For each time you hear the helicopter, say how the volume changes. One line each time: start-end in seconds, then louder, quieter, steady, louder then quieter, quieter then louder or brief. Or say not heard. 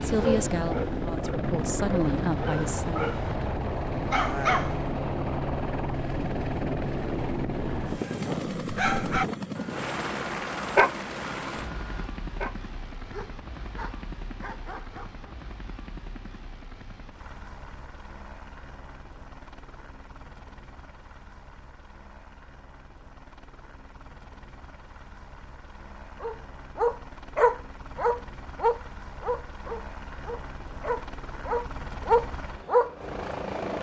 0.0-33.7 quieter then louder.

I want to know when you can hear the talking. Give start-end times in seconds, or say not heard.
0.0-3.0.